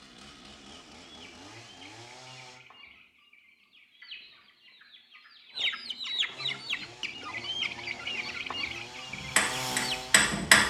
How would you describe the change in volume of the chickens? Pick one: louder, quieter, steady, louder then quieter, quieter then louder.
louder.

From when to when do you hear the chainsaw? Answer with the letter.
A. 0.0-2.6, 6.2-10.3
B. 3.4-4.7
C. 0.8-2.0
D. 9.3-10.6
A.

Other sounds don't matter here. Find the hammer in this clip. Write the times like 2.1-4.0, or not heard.
9.3-10.6.